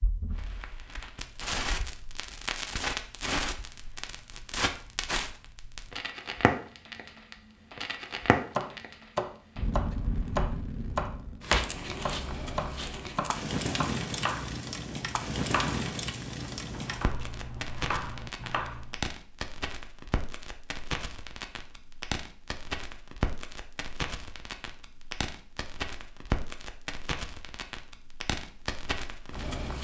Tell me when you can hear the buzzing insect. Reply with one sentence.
You can't hear the buzzing insect here.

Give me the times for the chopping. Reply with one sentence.
You can hear the chopping from 8.6 to 19.0 s.